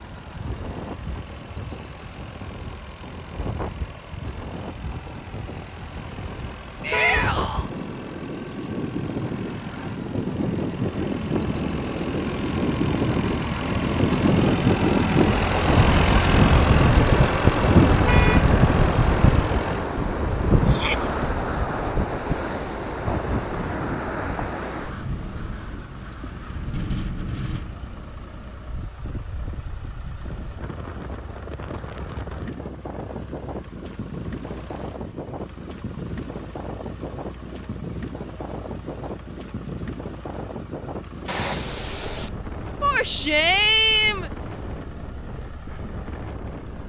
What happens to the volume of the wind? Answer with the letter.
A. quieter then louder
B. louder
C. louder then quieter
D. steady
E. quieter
C.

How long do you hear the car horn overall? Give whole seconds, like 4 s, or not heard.
2 s.